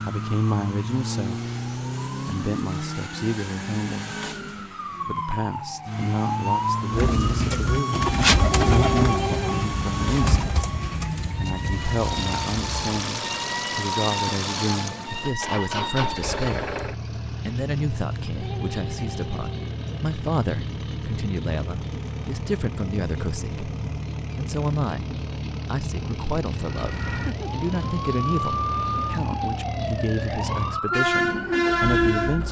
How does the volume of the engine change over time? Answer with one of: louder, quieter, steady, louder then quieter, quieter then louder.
steady.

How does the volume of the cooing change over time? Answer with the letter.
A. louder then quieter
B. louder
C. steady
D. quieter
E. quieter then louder
D.